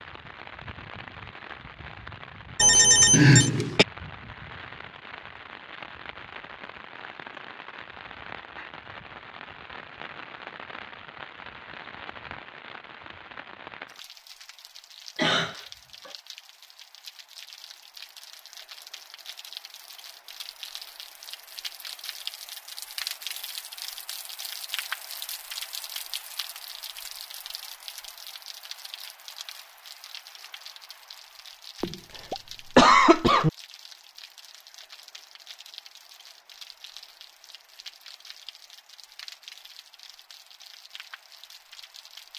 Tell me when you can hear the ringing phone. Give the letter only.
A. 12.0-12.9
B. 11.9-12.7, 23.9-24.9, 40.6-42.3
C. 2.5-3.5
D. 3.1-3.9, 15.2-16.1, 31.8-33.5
C.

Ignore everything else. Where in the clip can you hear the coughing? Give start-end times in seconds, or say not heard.
3.1-3.9, 15.2-16.1, 31.8-33.5.